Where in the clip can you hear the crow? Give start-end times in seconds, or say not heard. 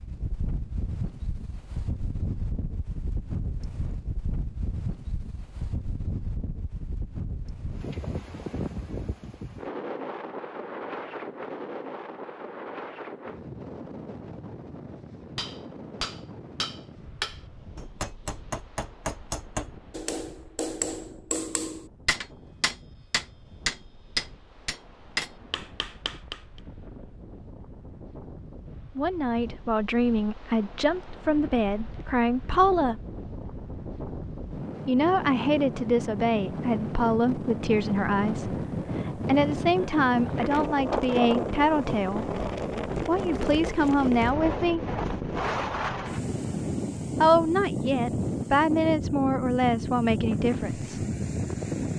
not heard.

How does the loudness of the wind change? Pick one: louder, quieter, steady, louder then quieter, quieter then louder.
quieter then louder.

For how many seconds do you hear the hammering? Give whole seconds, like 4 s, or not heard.
11 s.